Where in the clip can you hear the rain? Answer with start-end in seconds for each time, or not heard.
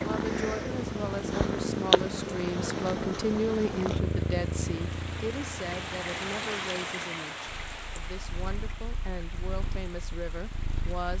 0.0-11.1.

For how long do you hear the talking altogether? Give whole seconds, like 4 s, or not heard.
11 s.